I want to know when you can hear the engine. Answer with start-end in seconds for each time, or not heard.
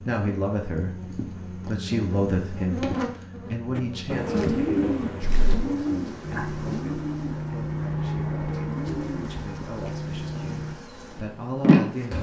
6.2-10.8.